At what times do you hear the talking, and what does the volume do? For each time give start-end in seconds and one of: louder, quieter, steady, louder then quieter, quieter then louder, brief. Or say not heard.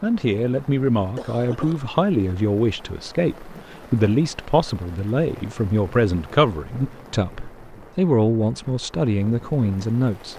0.0-10.3 steady.